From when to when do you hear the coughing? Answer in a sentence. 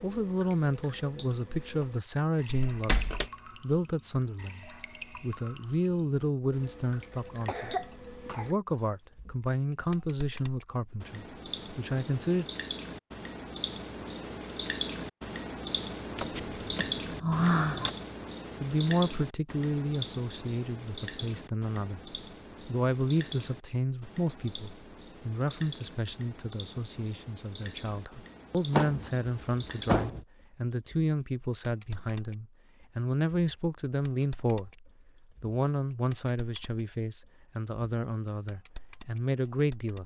You can hear the coughing from 7.1 to 8.6 s.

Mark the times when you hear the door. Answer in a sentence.
You can hear the door from 2.7 to 3.2 s, from 16.1 to 17.9 s and from 28.7 to 30.2 s.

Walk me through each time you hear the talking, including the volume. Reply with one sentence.
The talking can be heard from 0.0 to 12.4 s, at a steady volume; and from 18.6 to 40.0 s, at a steady volume.